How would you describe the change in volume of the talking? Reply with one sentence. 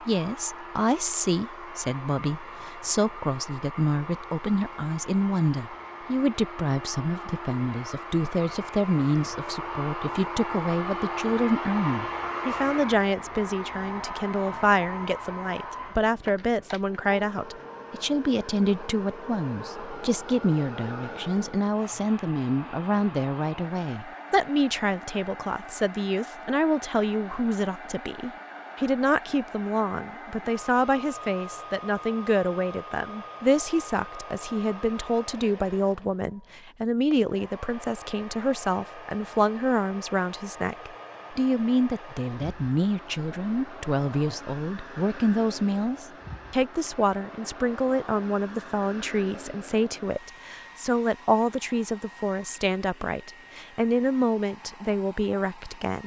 The volume of the talking stays about the same.